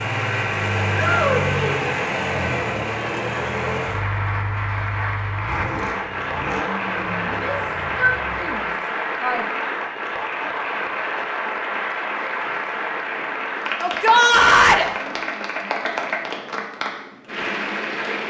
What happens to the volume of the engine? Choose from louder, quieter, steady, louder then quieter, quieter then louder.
quieter.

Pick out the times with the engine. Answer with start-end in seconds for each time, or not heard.
0.0-8.7.